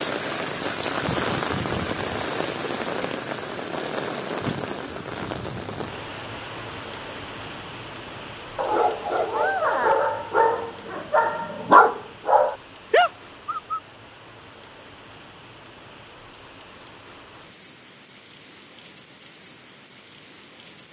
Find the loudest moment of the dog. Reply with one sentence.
The loudest moment of the dog is at 12 seconds.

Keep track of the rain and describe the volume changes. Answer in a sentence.
The volume of the rain goes down.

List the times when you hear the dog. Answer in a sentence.
You can hear the dog from 8.6 to 13.8 s.